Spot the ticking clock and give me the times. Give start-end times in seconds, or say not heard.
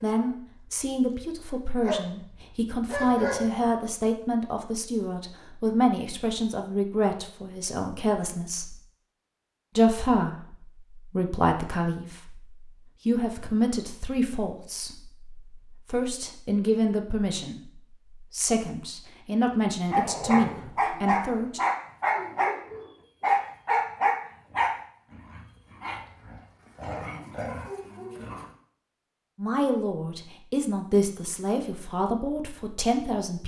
not heard.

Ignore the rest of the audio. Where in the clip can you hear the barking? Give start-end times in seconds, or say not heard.
0.0-3.5, 19.9-28.4.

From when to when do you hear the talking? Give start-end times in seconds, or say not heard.
0.0-8.8, 9.8-21.6, 29.4-33.4.